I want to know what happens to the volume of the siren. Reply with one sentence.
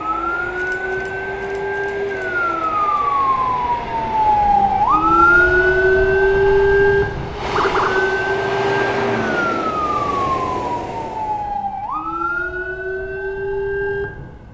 The volume of the siren goes up, then down.